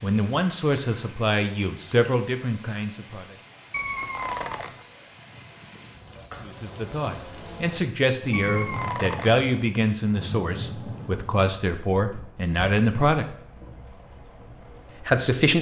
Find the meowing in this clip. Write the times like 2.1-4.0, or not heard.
3.7-4.8, 8.3-9.4.